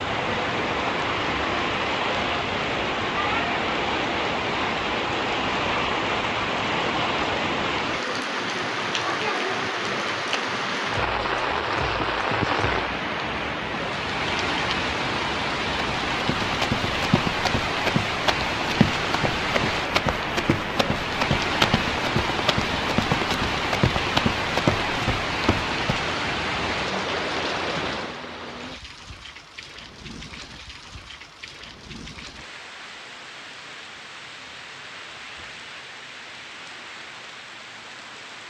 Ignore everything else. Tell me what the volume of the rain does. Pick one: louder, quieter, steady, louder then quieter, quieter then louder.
quieter.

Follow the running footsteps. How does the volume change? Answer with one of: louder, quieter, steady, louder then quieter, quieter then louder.
steady.